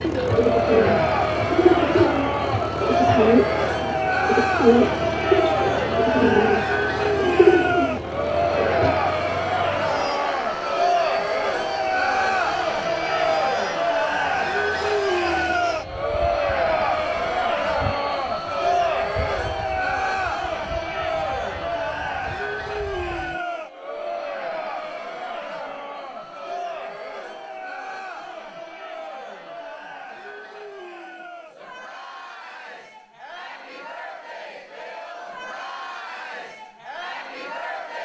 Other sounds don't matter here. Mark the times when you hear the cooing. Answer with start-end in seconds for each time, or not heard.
0.0-8.9.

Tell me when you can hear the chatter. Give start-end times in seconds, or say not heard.
0.1-38.0.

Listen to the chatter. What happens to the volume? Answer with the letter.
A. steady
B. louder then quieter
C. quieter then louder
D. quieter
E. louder
D.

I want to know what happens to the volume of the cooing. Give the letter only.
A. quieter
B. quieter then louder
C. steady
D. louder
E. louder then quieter
C.